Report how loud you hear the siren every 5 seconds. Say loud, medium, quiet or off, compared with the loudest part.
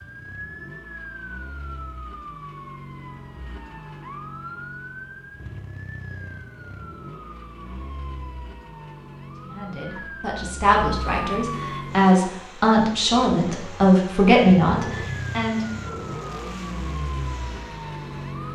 medium, medium, loud, loud.